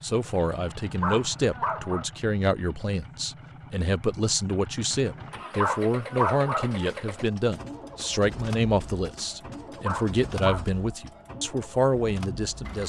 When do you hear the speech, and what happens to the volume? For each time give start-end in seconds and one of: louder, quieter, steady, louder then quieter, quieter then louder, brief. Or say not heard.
0.0-12.8 steady.